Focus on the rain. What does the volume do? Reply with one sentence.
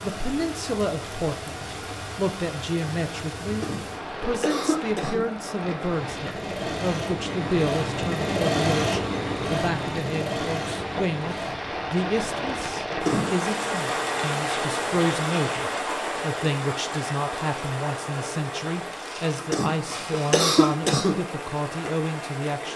The loudness of the rain goes up, then down.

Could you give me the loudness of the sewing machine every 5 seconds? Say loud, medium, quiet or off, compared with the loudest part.
medium, loud, medium, medium, medium.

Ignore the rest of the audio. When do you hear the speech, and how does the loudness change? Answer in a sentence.
You can hear the speech from 0.0 to 22.7 s, at a steady volume.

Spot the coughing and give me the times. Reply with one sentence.
You can hear the coughing from 3.5 to 5.2 s, from 12.9 to 13.4 s and from 19.4 to 21.1 s.